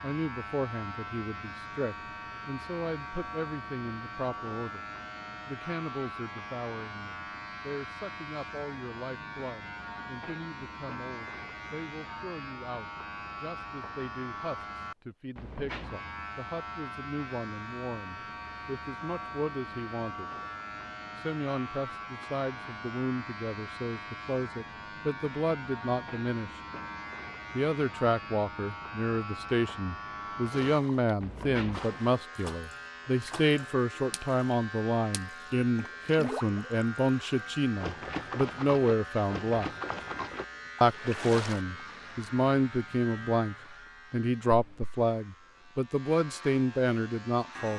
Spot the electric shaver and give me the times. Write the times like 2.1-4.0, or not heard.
0.0-47.7.